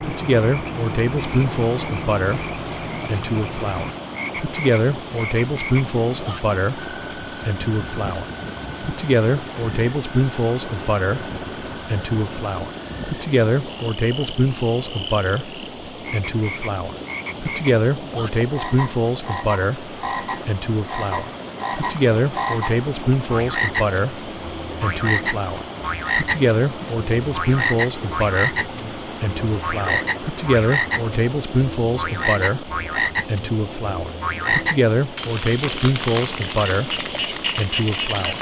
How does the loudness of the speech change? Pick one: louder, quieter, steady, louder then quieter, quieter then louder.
steady.